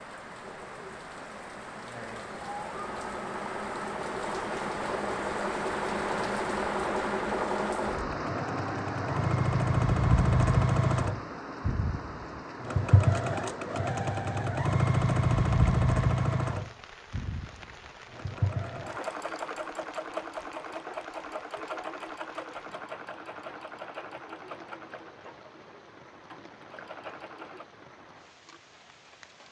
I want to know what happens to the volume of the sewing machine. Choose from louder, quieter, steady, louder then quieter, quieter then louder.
louder then quieter.